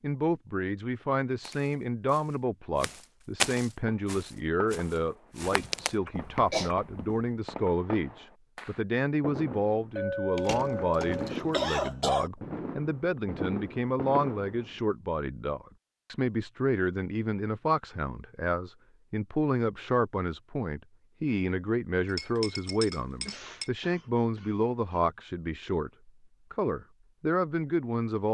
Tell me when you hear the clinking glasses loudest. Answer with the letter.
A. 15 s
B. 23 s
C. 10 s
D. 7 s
C.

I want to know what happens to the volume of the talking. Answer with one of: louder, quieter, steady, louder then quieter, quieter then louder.
steady.